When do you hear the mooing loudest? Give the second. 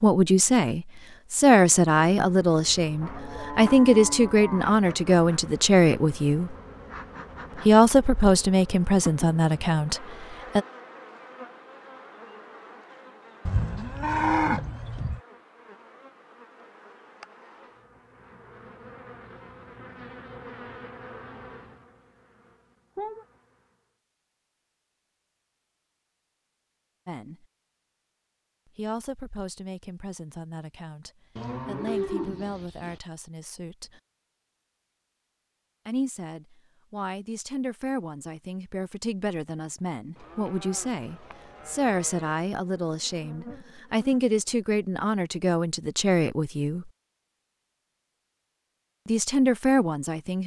14 s.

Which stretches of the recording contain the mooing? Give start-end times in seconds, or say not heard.
3.0-4.8, 13.4-15.2, 31.4-33.0, 40.1-42.4.